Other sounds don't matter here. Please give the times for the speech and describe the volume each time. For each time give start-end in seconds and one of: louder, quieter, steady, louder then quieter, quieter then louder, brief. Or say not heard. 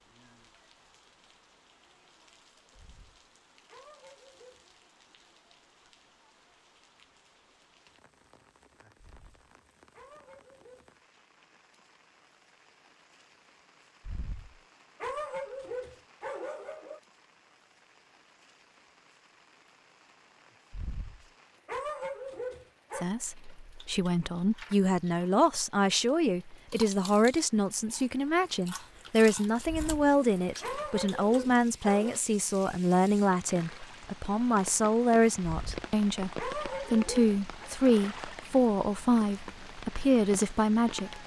22.9-41.2 steady.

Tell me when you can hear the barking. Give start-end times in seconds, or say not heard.
2.7-4.7, 8.9-10.9, 14.0-17.0, 20.7-23.1, 29.6-32.2, 35.5-37.7.